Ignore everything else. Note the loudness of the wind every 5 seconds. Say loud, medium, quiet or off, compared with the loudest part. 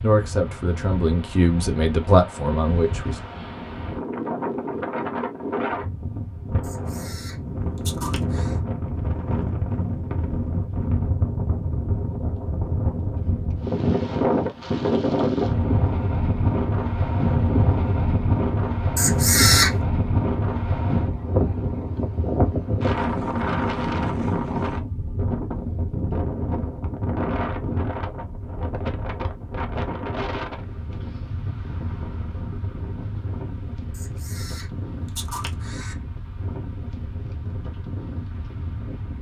medium, medium, loud, loud, loud, medium, medium, quiet.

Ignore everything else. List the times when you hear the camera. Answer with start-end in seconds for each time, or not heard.
6.6-8.6, 18.9-19.8, 34.0-36.0.